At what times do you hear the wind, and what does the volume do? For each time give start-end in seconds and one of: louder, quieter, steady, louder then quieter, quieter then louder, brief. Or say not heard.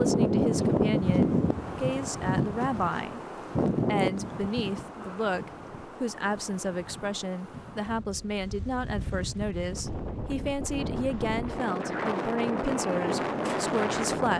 0.0-14.3 quieter then louder.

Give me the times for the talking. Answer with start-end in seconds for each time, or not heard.
0.0-3.2, 3.9-14.3.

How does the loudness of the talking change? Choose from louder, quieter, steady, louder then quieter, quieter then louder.
steady.